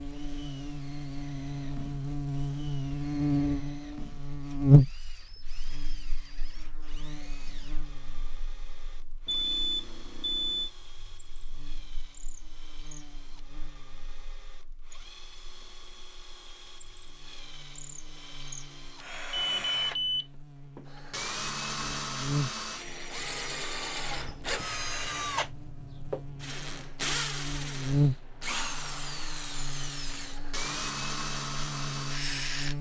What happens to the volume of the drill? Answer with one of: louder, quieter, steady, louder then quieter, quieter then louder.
louder.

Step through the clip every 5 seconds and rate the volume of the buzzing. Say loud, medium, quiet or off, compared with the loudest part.
loud, quiet, quiet, quiet, quiet, medium, quiet.